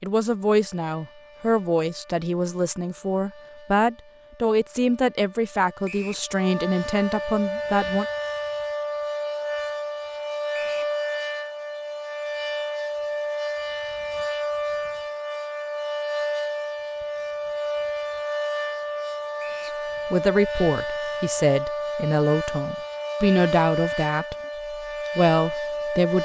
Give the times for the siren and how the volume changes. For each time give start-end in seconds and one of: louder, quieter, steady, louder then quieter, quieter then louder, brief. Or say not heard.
0.2-26.2 louder.